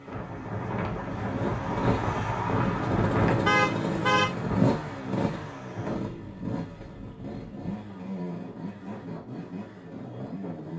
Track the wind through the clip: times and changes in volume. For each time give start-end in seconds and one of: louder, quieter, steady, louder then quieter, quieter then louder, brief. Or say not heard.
0.0-10.7 quieter.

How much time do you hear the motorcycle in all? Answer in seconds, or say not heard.
11 s.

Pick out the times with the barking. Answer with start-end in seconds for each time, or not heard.
not heard.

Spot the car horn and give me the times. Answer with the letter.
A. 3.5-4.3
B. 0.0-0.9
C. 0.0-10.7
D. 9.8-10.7
A.